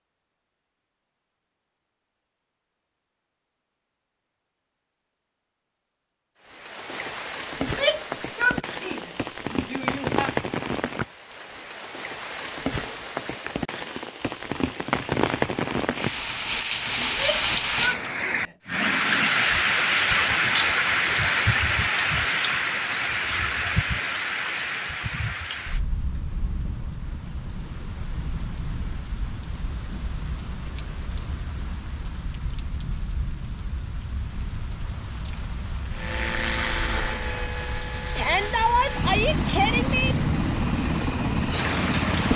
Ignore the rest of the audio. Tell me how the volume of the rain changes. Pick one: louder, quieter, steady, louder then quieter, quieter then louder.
louder then quieter.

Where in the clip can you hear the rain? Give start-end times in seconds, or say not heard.
6.5-42.3.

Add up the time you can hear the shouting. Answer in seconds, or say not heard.
6 s.